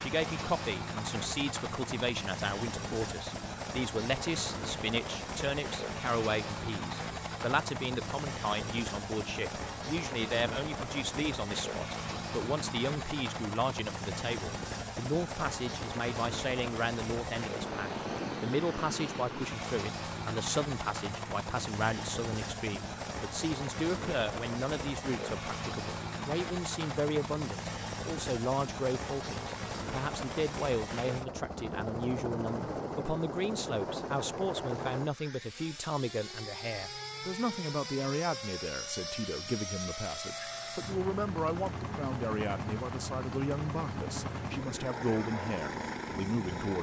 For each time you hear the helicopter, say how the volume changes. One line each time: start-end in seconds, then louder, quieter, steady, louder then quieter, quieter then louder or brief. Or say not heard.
0.0-46.7 steady.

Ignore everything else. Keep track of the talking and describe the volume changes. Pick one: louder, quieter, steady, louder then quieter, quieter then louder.
steady.